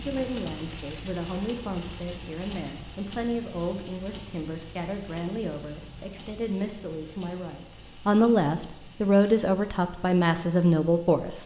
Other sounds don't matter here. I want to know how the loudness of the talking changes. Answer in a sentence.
The volume of the talking goes up.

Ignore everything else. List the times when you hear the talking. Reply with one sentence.
You can hear the talking from 0.0 to 11.4 s.